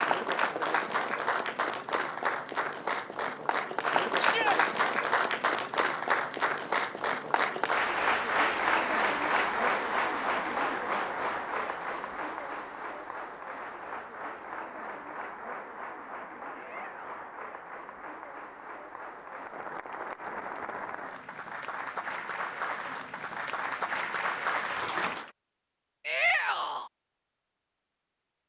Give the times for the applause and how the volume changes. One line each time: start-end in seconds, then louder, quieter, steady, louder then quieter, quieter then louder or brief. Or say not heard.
0.0-25.3 quieter then louder.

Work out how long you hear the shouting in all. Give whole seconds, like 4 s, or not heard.
2 s.